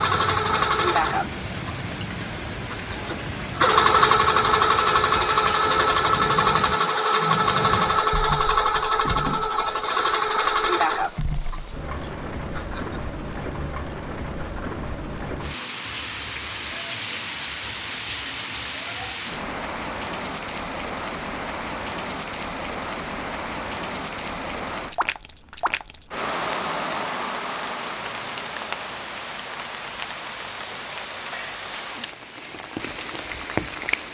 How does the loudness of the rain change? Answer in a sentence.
The volume of the rain stays about the same.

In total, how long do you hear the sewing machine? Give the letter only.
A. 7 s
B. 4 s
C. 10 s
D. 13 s
D.